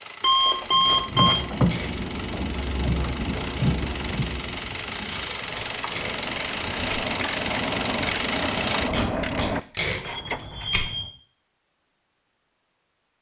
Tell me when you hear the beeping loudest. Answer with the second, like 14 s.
1 s.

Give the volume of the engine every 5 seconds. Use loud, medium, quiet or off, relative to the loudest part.
medium, loud, off.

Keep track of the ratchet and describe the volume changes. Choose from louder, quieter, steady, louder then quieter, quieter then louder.
quieter then louder.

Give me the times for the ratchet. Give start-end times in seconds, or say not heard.
0.7-10.9.